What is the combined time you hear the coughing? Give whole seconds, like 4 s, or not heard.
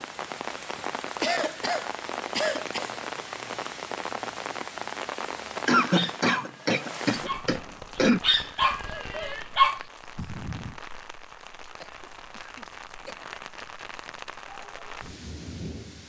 6 s.